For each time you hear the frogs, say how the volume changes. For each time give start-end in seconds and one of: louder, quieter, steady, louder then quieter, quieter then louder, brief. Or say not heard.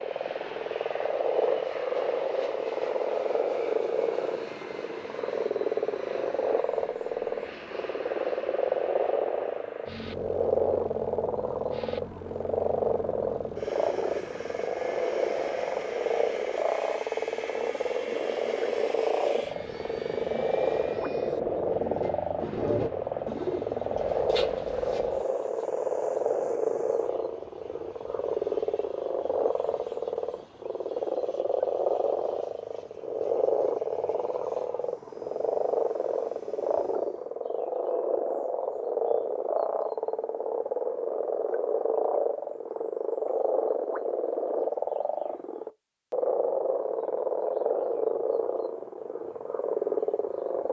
0.0-50.6 steady.